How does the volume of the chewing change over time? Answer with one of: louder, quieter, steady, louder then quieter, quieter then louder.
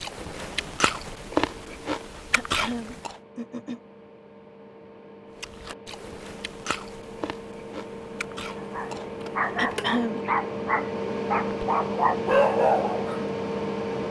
quieter.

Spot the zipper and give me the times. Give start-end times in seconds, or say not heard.
not heard.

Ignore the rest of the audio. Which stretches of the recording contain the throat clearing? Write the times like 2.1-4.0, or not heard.
2.3-3.8, 9.6-10.2.